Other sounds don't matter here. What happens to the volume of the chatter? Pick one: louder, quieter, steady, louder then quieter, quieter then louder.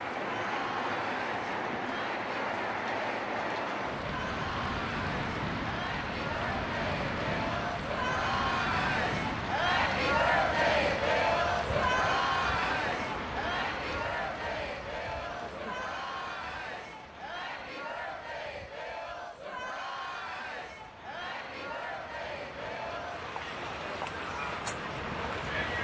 louder then quieter.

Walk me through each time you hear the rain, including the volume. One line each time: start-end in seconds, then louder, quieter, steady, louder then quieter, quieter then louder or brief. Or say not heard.
0.0-25.8 quieter then louder.